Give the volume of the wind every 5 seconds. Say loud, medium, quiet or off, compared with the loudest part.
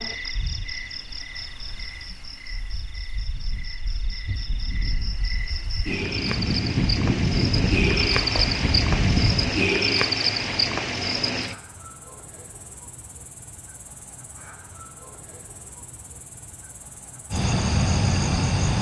quiet, loud, off, off.